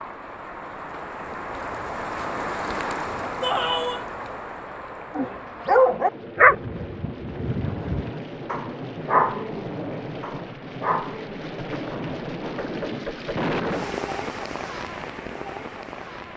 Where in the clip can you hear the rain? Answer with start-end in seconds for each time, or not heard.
0.0-16.3.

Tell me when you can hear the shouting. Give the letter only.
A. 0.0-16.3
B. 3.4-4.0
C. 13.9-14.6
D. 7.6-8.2
B.